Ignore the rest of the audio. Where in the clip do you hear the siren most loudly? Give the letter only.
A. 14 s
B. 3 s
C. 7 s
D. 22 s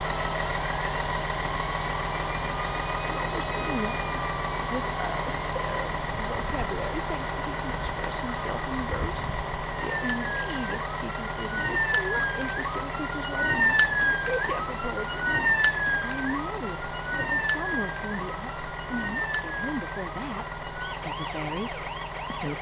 A.